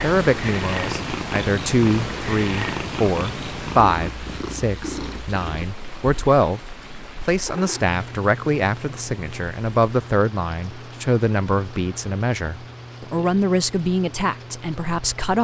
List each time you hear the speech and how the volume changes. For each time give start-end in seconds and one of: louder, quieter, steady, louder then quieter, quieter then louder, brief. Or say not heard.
0.0-15.4 steady.